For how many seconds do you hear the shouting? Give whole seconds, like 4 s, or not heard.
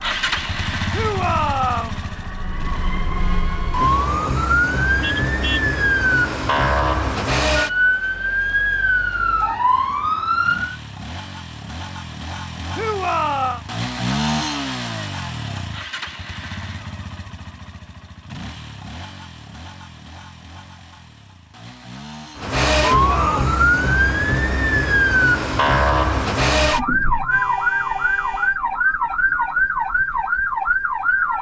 3 s.